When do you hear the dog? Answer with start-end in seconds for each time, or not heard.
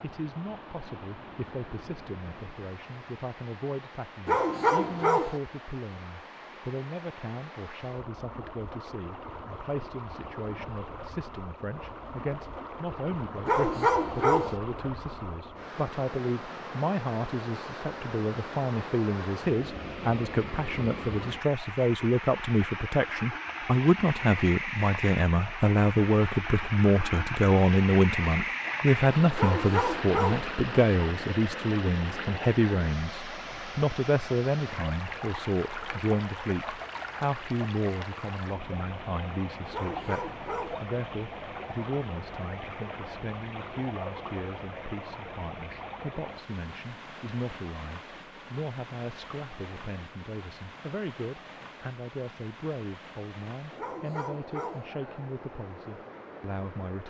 4.2-5.4, 13.4-14.6, 29.4-30.5, 39.7-40.9, 53.8-54.9.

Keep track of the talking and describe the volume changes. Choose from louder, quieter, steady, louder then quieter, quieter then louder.
louder then quieter.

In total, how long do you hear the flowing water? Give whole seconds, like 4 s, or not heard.
57 s.